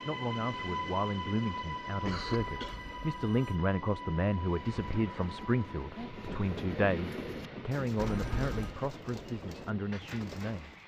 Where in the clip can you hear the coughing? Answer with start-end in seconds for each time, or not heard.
2.0-2.8.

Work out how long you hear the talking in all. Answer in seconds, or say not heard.
11 s.